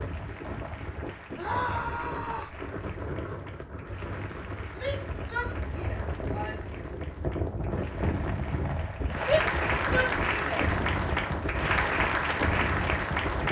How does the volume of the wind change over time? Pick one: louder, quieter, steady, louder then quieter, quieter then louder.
louder.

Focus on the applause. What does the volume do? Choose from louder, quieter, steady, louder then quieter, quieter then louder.
louder.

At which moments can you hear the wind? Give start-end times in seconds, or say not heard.
0.0-13.4.